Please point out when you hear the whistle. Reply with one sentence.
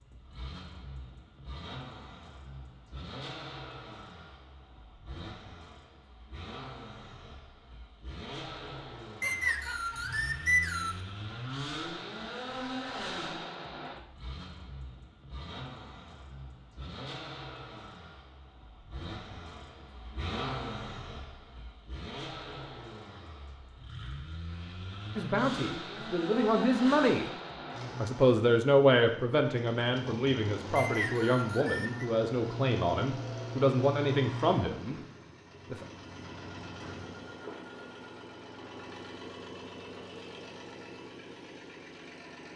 You can hear the whistle from 9.2 to 11.0 s and from 30.8 to 32.0 s.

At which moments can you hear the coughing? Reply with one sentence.
You can't hear the coughing here.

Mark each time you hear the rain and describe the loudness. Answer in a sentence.
You can't hear the rain here.